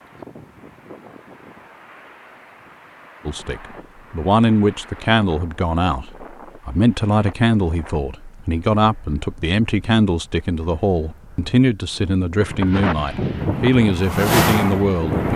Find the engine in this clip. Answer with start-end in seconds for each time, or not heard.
13.3-15.3.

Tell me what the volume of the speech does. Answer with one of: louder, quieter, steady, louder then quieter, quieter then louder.
steady.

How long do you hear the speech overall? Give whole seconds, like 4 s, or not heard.
12 s.